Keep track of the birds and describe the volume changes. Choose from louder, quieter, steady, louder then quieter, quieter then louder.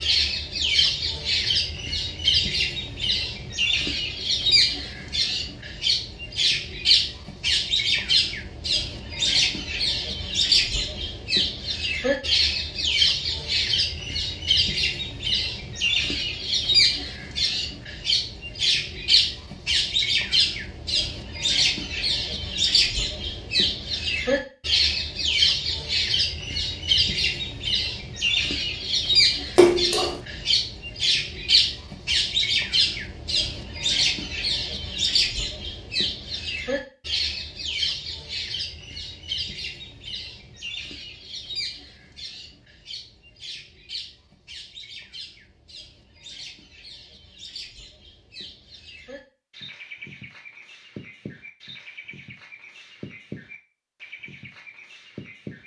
quieter.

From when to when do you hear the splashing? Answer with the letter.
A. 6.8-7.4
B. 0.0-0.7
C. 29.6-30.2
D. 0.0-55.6
C.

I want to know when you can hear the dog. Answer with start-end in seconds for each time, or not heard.
not heard.